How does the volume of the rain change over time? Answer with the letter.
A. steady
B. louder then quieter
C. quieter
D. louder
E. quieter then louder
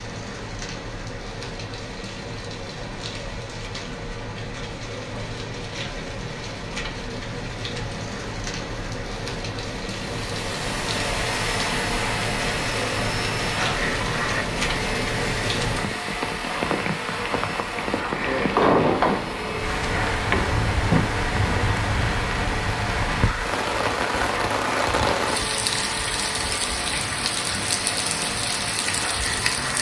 D.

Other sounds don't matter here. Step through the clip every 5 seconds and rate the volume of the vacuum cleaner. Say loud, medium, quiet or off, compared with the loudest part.
off, off, loud, loud, loud, loud.